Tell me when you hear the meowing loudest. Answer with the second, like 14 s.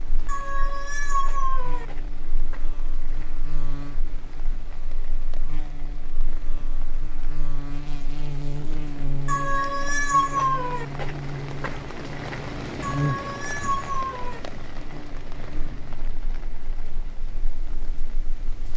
10 s.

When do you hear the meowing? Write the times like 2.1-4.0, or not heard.
0.2-1.9, 9.2-10.8, 12.8-14.4.